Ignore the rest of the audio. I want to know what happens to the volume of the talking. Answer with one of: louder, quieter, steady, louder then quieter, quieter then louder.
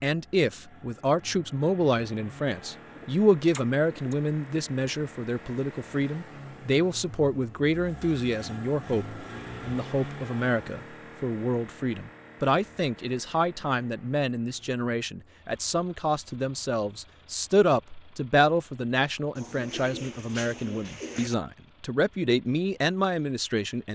steady.